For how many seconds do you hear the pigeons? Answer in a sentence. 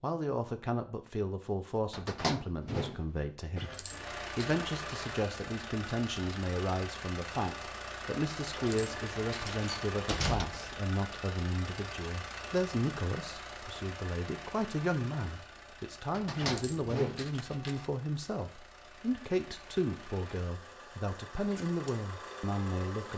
You can't hear the pigeons here.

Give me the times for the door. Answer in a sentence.
The door can be heard from 1.9 to 3.6 s, from 9.3 to 10.8 s and from 16.1 to 17.4 s.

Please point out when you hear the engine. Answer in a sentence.
You can hear the engine from 3.8 to 23.1 s.